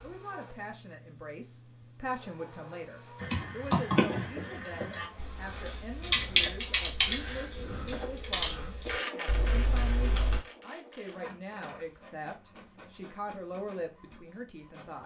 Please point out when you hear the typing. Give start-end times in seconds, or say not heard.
3.2-10.4.